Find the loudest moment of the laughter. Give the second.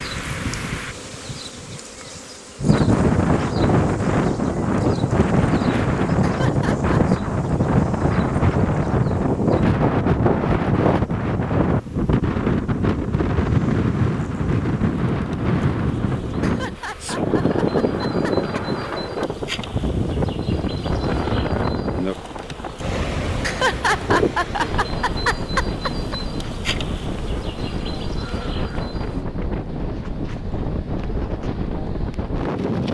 24 s.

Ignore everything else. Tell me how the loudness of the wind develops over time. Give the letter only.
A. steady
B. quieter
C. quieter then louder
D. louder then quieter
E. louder
B.